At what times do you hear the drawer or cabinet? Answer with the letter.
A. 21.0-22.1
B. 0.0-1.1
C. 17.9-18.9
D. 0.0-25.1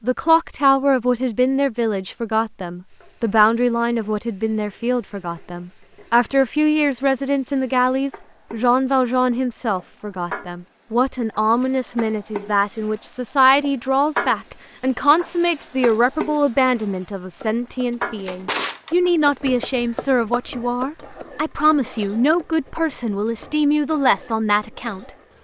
C.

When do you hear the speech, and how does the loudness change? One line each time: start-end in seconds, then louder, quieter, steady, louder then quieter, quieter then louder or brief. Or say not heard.
0.0-25.1 steady.